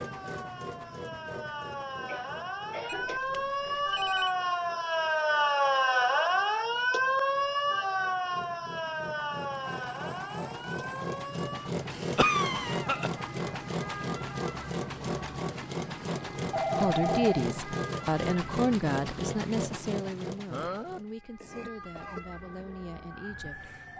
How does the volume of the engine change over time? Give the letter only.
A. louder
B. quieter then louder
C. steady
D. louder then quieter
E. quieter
B.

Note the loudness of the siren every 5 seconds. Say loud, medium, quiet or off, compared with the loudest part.
medium, loud, quiet, quiet, quiet.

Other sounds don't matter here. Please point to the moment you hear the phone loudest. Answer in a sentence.
The volume of the phone peaks at 17 seconds.